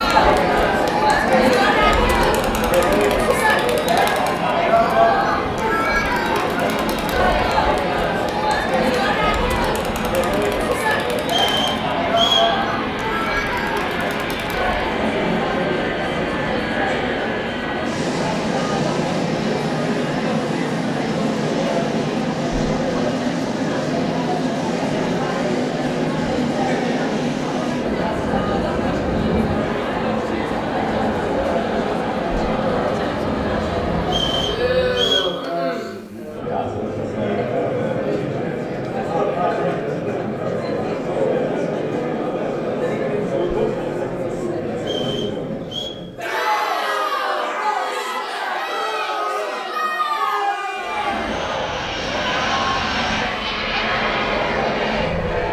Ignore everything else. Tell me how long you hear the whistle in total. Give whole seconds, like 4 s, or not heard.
4 s.